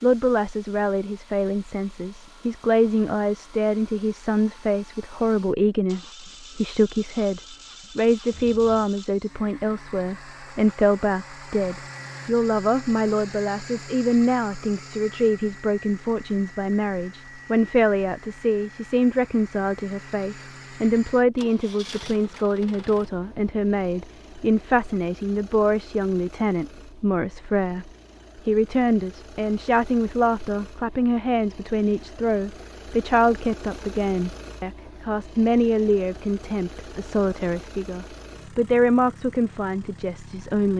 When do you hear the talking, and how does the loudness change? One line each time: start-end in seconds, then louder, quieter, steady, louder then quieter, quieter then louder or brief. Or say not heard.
0.0-40.7 steady.